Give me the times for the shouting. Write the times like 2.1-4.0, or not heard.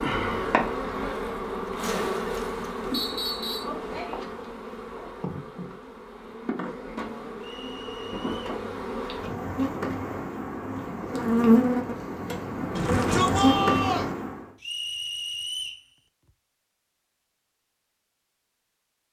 12.8-14.2.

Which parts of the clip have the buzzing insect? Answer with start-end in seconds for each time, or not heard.
0.0-14.4.